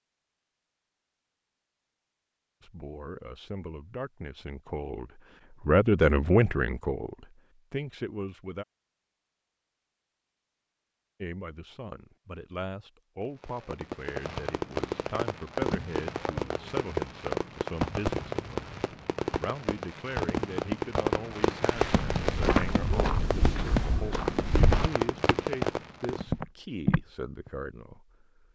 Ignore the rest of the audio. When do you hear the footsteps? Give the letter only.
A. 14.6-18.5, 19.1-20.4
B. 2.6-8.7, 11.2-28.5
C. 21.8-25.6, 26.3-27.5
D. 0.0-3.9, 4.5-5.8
C.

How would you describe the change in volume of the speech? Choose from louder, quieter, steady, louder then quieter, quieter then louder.
quieter.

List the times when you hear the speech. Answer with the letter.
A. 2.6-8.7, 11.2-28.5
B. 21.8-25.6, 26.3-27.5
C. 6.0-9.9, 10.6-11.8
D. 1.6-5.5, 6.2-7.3
A.